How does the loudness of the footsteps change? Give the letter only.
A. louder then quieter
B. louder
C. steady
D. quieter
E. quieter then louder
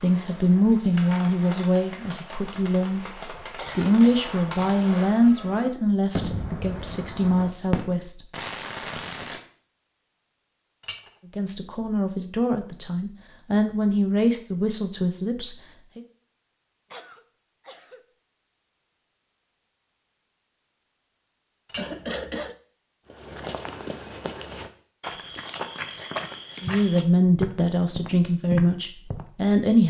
B.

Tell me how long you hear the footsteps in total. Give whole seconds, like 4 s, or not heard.
6 s.